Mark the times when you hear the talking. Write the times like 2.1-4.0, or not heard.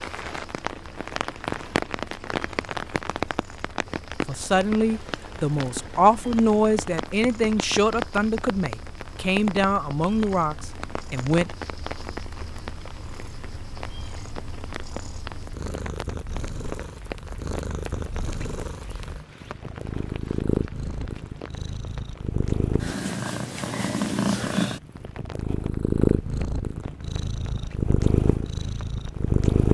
4.2-11.5.